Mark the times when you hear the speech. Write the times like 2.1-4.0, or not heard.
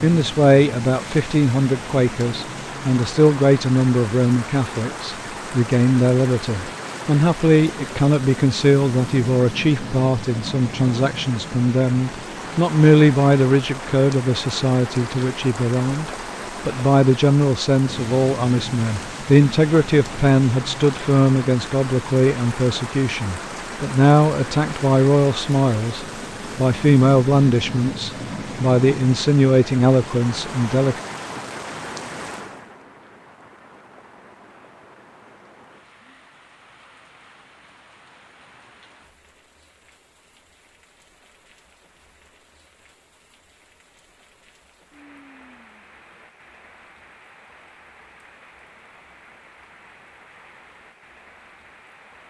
0.0-31.0.